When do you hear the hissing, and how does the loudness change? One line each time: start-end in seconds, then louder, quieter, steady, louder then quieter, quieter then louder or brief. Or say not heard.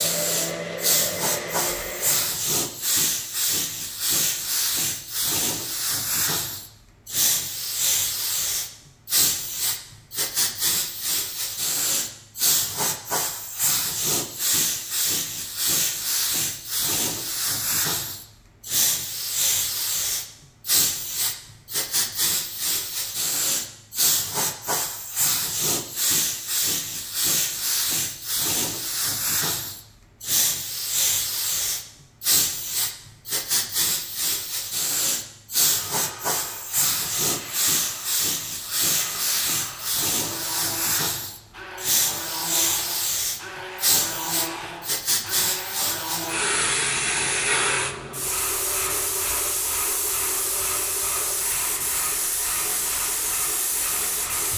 0.0-54.5 steady.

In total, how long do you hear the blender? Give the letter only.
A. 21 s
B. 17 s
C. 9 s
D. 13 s
A.